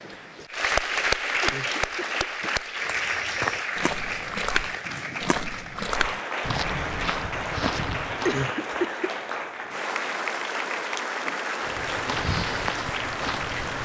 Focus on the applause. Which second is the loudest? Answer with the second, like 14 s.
1 s.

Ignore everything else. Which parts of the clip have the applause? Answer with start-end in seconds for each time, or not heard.
0.0-13.8.